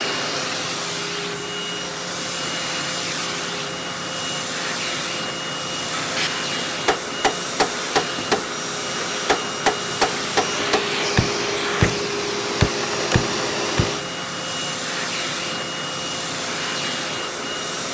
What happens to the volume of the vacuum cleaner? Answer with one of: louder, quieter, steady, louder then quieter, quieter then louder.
steady.